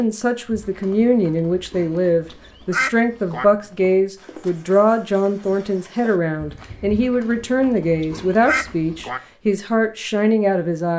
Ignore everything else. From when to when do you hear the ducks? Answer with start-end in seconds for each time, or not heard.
2.3-3.5, 8.0-9.2.